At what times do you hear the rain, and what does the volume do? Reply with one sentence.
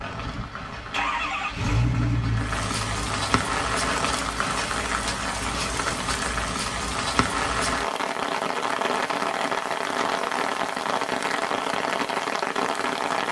The rain can be heard from 0.0 to 13.2 s, getting louder.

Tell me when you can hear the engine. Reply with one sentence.
You can hear the engine from 0.0 to 3.5 s.